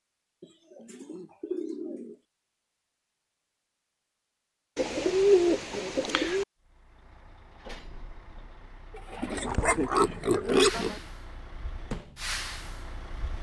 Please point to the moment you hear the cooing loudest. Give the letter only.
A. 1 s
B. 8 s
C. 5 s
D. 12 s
C.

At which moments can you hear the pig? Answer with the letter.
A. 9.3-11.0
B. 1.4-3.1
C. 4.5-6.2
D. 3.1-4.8
A.